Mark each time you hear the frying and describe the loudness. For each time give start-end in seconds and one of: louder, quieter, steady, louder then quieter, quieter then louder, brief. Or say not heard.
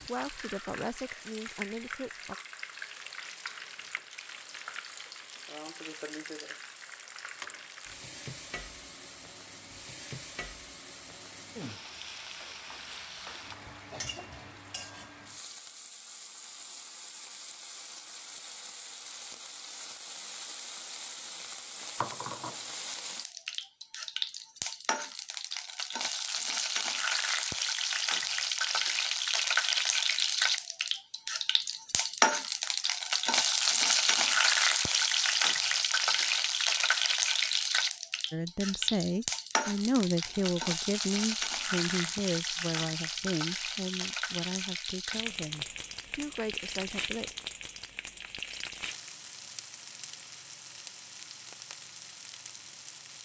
0.0-53.2 louder then quieter.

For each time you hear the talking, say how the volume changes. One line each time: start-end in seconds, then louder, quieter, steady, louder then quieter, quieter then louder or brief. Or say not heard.
0.0-2.4 brief
38.3-47.4 quieter.